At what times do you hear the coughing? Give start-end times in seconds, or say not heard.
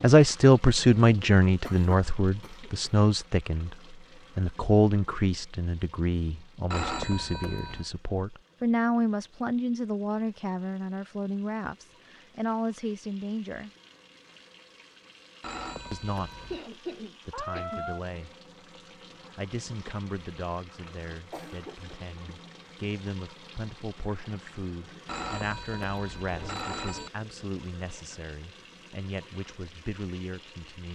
1.6-3.0, 16.5-17.9, 21.1-22.0.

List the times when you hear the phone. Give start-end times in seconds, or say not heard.
6.7-7.9, 15.4-16.6, 25.1-27.1.